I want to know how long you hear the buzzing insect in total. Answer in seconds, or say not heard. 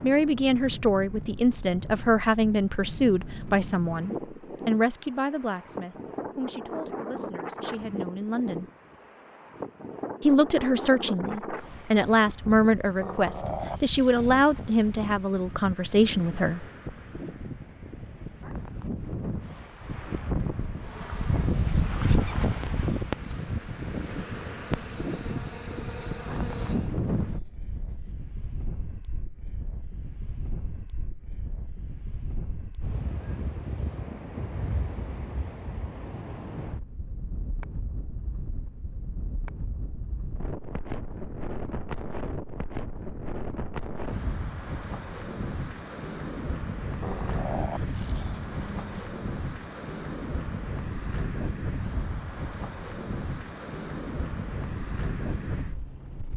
6 s.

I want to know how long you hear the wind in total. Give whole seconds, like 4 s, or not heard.
56 s.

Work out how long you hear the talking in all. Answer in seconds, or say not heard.
15 s.